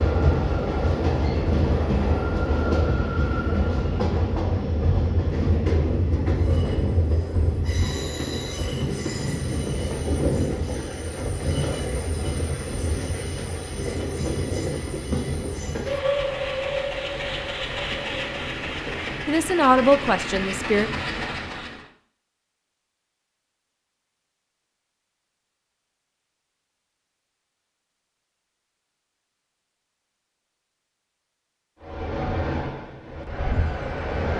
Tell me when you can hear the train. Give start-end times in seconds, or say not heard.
0.0-21.9, 31.8-34.3.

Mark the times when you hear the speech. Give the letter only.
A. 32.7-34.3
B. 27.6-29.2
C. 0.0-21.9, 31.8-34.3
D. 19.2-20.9
D.